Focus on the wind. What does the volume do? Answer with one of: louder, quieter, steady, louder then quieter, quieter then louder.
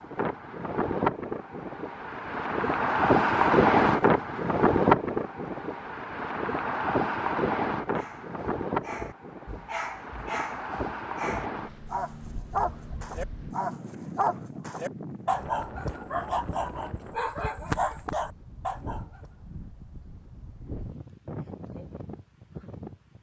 quieter.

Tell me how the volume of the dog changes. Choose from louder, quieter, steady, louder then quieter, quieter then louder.
louder.